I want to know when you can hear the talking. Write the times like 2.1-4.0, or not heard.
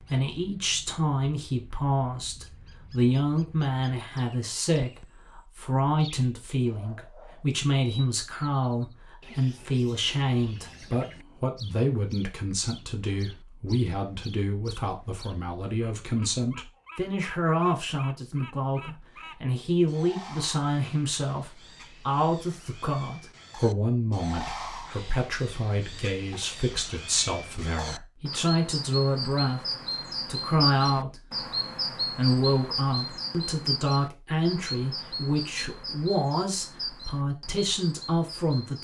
0.1-29.6, 30.2-31.2, 32.1-38.8.